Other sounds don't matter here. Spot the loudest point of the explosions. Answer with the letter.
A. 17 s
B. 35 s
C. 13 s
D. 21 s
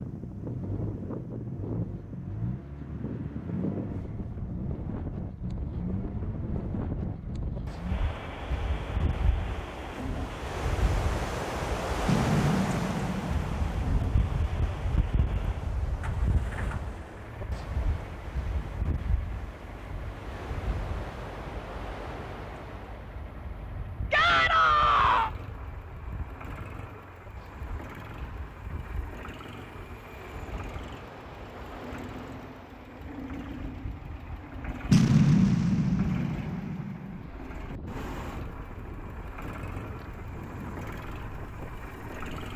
B.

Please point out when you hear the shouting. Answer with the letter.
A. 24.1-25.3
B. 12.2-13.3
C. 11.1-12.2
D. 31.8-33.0
A.